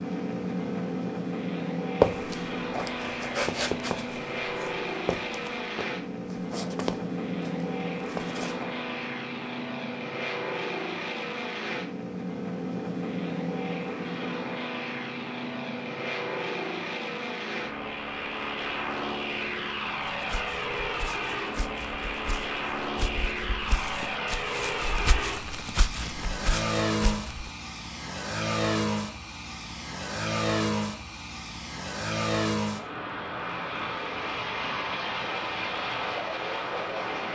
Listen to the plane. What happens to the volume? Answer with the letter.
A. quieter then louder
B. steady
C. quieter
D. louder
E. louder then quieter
B.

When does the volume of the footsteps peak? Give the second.
2 s.